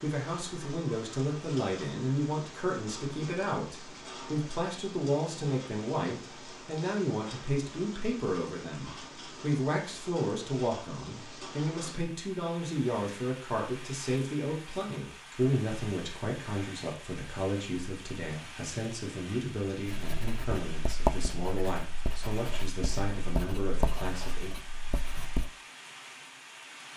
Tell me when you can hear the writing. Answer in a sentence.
The writing can be heard from 19.9 to 25.5 s.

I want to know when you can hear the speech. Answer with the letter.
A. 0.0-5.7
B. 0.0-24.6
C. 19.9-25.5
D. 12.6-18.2
B.